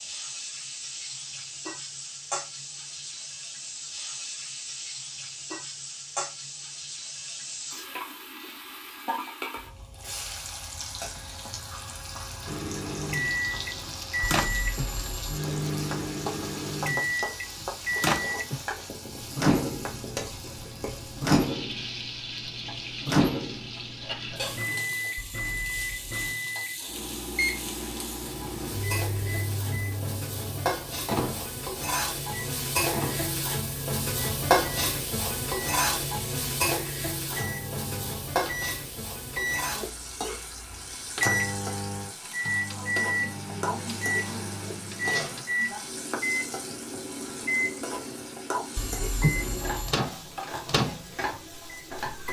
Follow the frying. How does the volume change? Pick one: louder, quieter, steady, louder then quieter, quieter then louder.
louder then quieter.